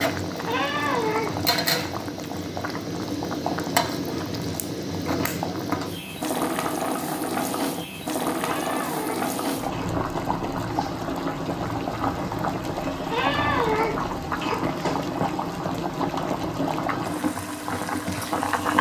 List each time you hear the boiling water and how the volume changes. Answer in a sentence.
You can hear the boiling water from 0.0 to 18.7 s, at a steady volume.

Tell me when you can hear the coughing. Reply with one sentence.
The coughing can be heard from 0.5 to 1.4 s, from 8.4 to 10.3 s and from 13.1 to 15.0 s.